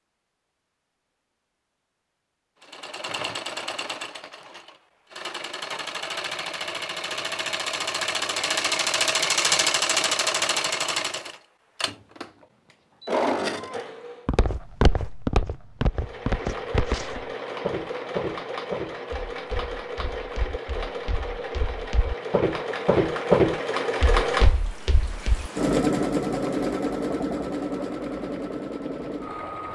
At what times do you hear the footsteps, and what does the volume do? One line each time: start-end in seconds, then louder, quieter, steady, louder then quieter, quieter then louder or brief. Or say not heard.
14.2-25.5 quieter then louder.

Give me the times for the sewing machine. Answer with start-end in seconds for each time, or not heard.
2.6-14.3, 15.9-29.7.